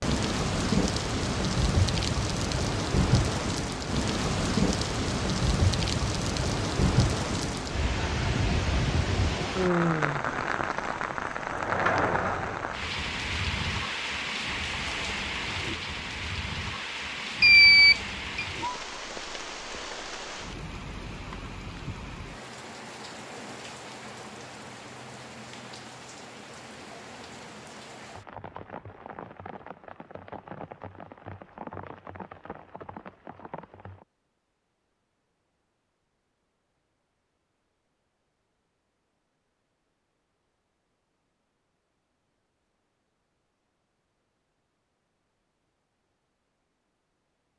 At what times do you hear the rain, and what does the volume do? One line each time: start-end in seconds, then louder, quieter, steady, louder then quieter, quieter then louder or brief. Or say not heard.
0.0-34.0 quieter.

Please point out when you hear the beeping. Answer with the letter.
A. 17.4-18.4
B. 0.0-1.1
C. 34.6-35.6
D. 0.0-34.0
A.